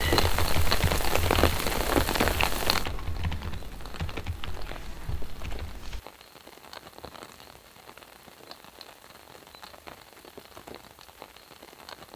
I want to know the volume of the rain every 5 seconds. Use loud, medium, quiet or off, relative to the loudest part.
loud, quiet, quiet.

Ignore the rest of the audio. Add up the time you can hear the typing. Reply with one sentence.
The typing can be heard for 6 seconds in total.